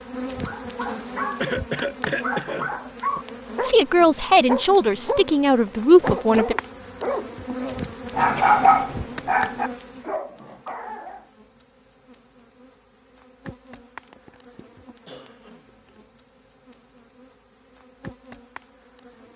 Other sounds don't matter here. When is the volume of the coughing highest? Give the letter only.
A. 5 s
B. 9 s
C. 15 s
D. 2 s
D.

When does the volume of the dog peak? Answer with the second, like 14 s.
9 s.